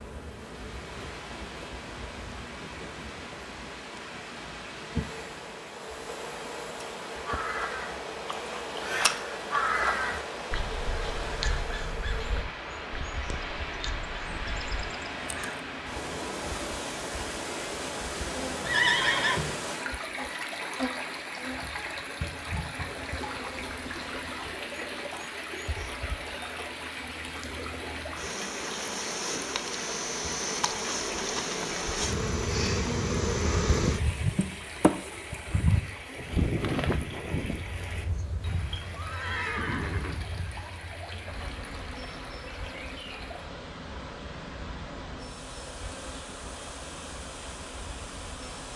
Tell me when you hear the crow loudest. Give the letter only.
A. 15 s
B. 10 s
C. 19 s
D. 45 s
B.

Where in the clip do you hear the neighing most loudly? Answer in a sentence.
The volume of the neighing peaks at 19 seconds.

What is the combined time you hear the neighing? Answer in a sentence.
You can hear the neighing for 3 seconds altogether.